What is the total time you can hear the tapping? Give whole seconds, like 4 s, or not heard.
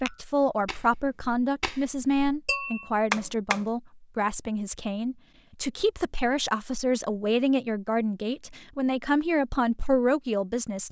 4 s.